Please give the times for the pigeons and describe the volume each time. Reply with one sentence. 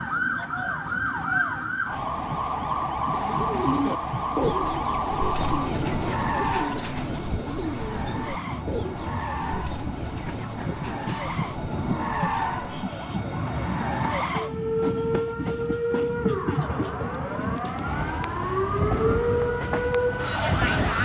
The pigeons can be heard from 3.0 to 12.7 s, getting quieter.